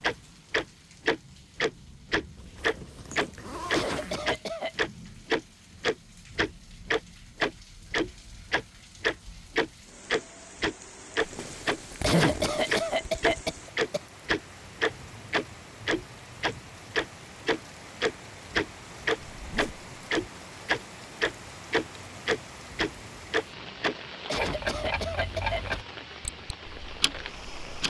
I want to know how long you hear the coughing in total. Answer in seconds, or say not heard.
5 s.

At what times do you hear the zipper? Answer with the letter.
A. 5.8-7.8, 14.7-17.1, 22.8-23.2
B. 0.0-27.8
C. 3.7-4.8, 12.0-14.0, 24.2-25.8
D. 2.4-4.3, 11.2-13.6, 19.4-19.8
D.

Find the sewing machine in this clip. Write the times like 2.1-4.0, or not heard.
not heard.